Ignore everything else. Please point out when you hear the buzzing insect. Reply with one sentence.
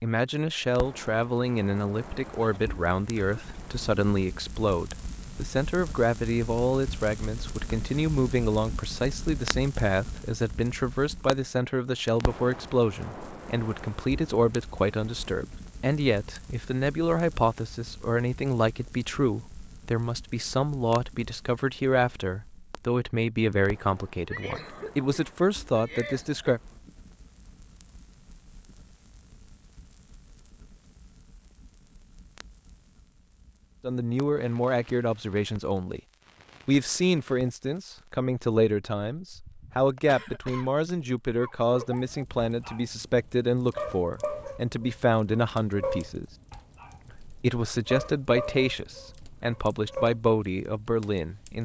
You can't hear the buzzing insect here.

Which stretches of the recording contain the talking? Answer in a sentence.
You can hear the talking from 0.0 to 26.6 s, from 33.8 to 36.0 s, from 36.6 to 46.2 s and from 47.2 to 51.6 s.